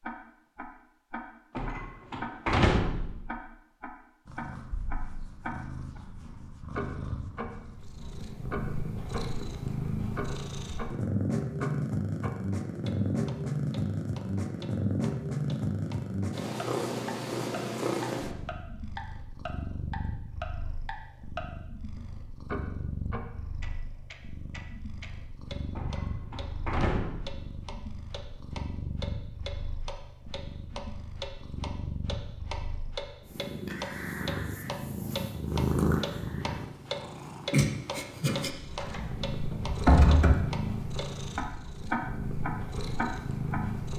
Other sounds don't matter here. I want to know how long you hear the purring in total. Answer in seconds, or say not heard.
40 s.